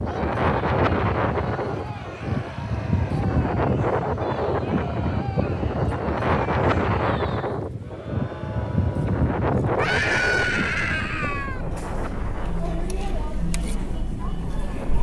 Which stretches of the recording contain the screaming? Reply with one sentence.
You can hear the screaming from 2.1 to 3.3 s and from 9.8 to 11.7 s.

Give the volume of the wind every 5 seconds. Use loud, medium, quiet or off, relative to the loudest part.
loud, loud, medium.